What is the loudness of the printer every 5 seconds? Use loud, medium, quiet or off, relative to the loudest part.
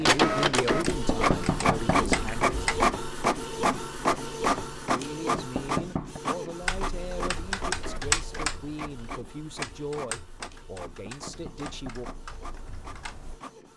loud, medium, quiet.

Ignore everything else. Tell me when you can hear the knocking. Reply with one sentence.
The knocking can be heard from 0.7 to 2.3 s, from 5.0 to 6.2 s and from 10.5 to 12.3 s.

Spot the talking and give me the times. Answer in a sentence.
You can hear the talking from 0.0 to 2.6 s and from 4.8 to 12.1 s.